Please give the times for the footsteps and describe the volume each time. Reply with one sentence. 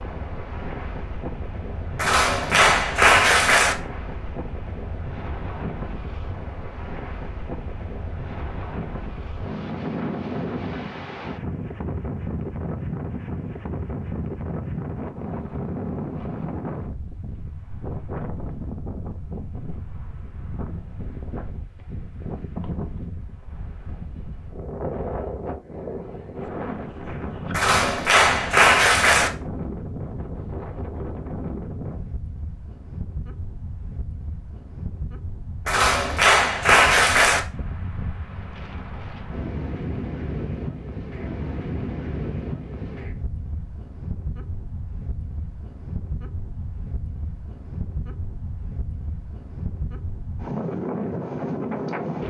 The footsteps can't be heard in this clip.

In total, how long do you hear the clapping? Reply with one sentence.
You can hear the clapping for 5 seconds altogether.